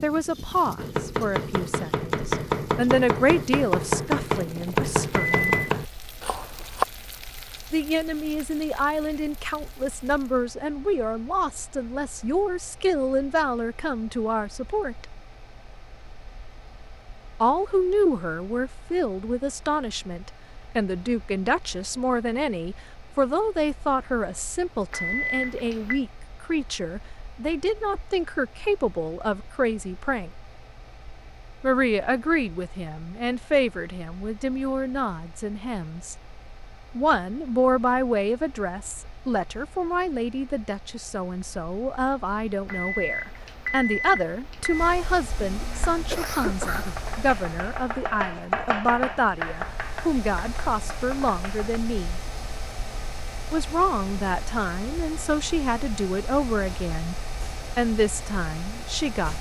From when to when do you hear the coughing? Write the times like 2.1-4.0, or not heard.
45.4-47.0.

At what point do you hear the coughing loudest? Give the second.
47 s.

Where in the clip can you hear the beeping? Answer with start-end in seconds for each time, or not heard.
5.1-5.5, 24.9-26.0, 42.6-44.9.